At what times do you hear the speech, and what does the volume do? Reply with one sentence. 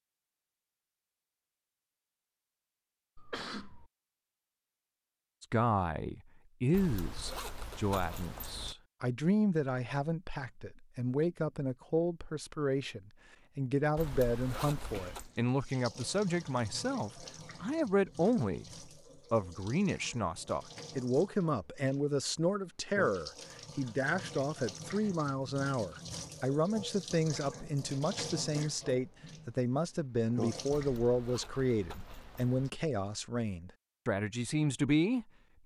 The speech can be heard from 5.4 to 35.2 s, at a steady volume.